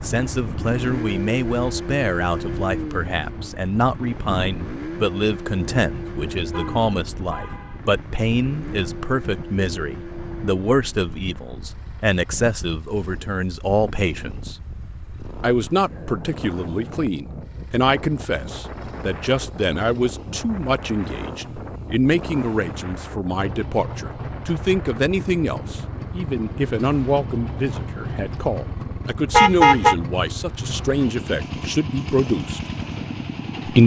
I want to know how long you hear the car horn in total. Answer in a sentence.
The car horn can be heard for 2 seconds in total.